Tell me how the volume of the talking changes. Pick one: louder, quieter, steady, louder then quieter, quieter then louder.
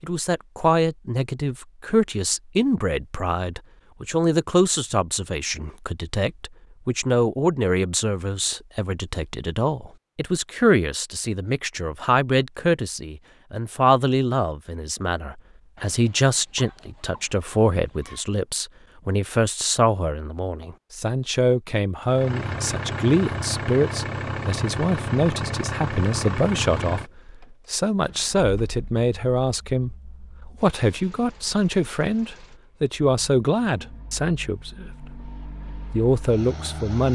steady.